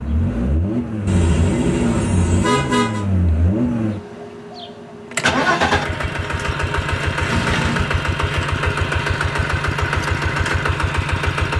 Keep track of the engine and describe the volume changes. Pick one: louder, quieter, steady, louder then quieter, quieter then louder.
steady.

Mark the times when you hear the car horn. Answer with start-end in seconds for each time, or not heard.
1.1-3.0, 7.2-7.9.